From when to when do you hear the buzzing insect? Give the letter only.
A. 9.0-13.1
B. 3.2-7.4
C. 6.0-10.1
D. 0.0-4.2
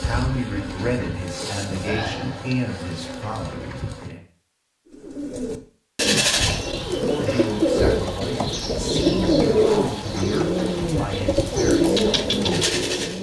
D.